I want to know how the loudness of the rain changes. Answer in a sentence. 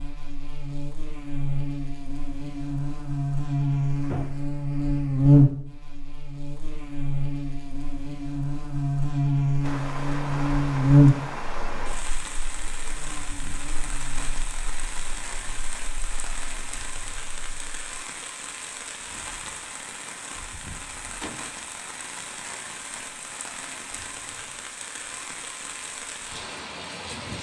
The volume of the rain stays about the same.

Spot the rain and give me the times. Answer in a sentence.
The rain can be heard from 9.6 to 27.3 s.